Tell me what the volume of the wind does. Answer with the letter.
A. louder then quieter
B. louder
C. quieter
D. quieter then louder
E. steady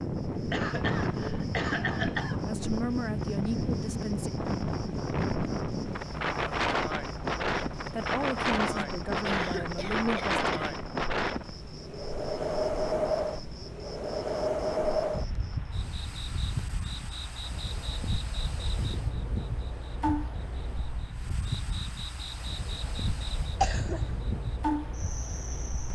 C.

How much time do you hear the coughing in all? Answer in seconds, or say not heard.
4 s.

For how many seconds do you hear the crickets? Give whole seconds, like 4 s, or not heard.
26 s.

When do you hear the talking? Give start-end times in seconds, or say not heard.
2.5-4.3, 7.9-10.6.